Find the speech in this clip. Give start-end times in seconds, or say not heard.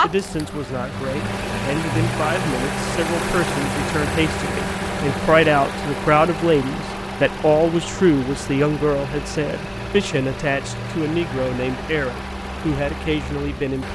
0.0-13.8.